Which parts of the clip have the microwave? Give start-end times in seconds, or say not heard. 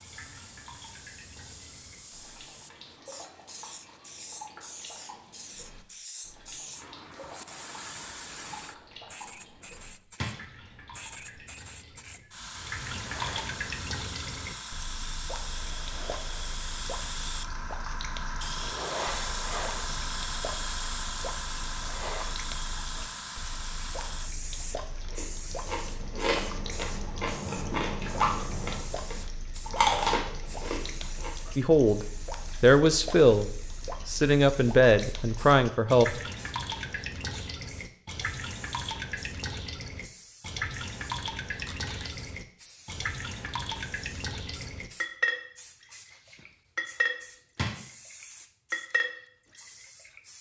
not heard.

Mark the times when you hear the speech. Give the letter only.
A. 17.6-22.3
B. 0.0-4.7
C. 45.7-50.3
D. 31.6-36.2
D.